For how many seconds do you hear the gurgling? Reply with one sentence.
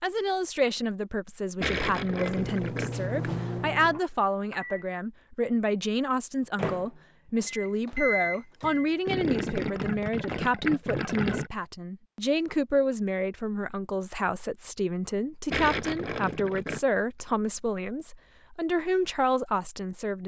You can hear the gurgling for 5 seconds altogether.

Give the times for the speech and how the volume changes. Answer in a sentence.
You can hear the speech from 0.0 to 20.2 s, at a steady volume.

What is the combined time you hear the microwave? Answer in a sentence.
You can hear the microwave for 6 seconds altogether.